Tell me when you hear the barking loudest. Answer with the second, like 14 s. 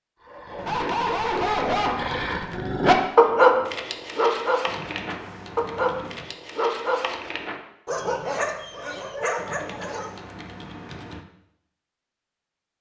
3 s.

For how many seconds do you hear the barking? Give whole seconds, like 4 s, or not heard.
10 s.